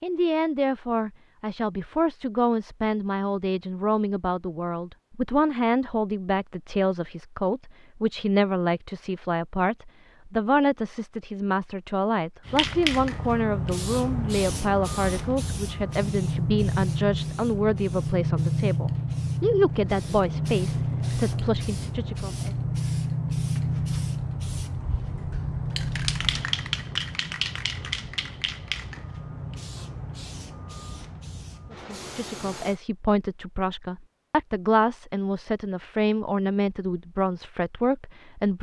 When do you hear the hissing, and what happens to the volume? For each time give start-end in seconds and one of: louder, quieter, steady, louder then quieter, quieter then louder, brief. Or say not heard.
12.4-32.8 quieter.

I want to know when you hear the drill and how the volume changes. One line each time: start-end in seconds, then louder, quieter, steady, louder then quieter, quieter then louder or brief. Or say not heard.
not heard.